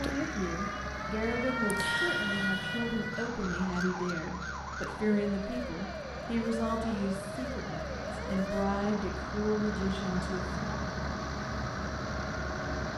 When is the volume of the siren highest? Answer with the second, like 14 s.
2 s.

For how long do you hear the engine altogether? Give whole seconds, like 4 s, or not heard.
13 s.